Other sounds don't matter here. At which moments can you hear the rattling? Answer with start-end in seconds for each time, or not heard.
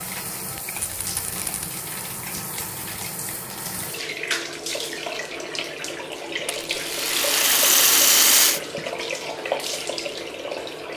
0.8-1.7, 6.5-8.6.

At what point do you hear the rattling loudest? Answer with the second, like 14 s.
8 s.